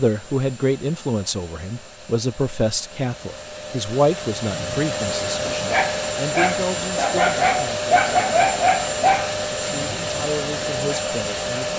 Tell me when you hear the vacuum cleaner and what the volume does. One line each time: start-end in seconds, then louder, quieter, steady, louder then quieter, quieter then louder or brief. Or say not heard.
0.0-11.7 louder.